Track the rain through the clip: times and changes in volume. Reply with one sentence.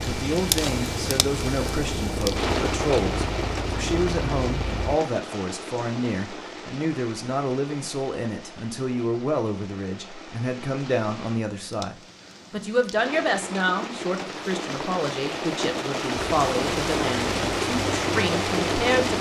You can hear the rain from 0.0 to 19.1 s, getting quieter then louder.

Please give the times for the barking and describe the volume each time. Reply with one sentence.
The barking can't be heard in this clip.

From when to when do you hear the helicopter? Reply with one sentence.
You can hear the helicopter from 0.0 to 5.0 s and from 16.1 to 19.1 s.